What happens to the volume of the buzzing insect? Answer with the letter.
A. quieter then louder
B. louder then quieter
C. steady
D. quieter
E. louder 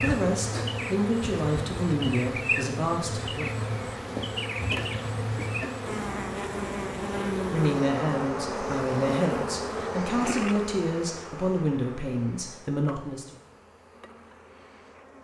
D.